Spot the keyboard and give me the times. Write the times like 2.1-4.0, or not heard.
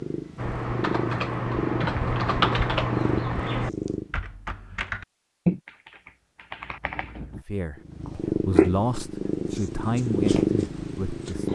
0.3-7.5.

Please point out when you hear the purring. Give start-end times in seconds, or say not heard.
0.0-4.2, 7.8-11.5.